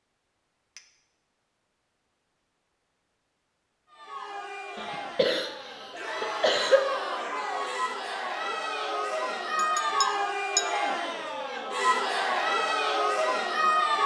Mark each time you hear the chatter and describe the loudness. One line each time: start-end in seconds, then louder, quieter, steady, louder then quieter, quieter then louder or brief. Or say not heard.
3.9-14.0 louder.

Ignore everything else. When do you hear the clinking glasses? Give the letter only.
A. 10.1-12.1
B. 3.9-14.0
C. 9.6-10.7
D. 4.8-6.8
C.